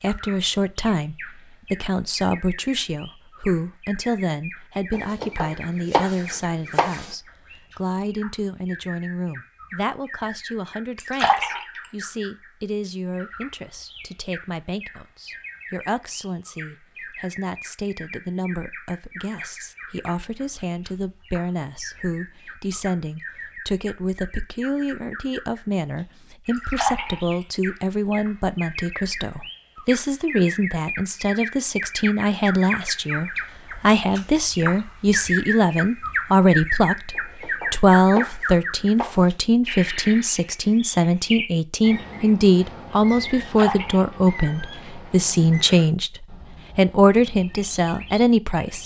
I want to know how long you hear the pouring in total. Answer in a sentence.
The pouring can be heard for 3 seconds in total.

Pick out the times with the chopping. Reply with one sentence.
The chopping can be heard from 4.9 to 7.2 s and from 37.1 to 39.4 s.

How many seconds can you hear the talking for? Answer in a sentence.
The talking can be heard for 49 seconds in total.